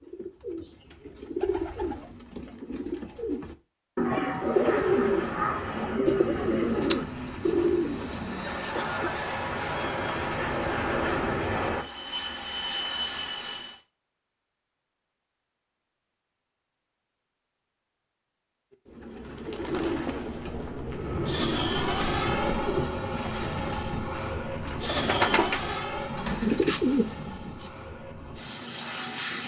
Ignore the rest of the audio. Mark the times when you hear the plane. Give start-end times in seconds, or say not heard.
4.4-13.8, 20.9-29.4.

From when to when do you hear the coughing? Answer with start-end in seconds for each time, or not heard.
8.4-9.2.